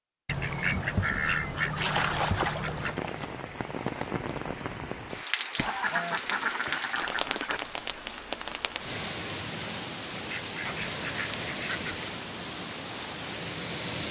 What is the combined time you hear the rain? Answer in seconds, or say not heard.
11 s.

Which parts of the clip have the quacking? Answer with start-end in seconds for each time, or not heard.
0.2-3.0, 5.5-7.6, 10.2-12.1.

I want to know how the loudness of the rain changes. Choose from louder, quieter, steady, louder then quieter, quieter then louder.
steady.